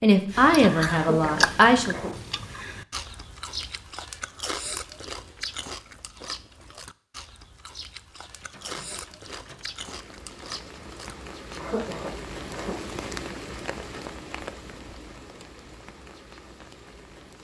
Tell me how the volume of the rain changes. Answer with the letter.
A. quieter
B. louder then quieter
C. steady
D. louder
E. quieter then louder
B.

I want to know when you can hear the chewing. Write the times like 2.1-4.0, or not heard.
0.3-11.6.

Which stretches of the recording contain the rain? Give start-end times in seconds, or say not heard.
8.2-17.3.